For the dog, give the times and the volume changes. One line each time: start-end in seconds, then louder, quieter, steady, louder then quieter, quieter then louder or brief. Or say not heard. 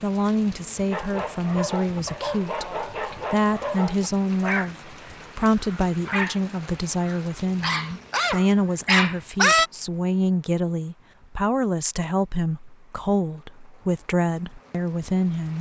0.9-9.7 louder.